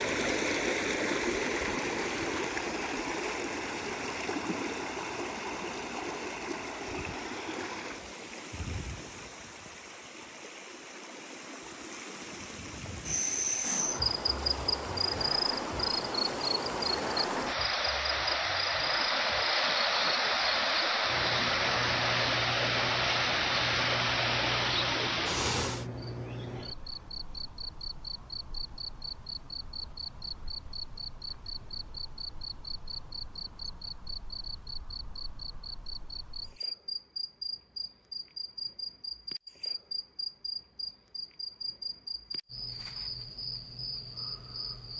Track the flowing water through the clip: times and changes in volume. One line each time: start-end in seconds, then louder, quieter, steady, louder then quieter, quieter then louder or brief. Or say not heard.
0.0-25.9 quieter then louder.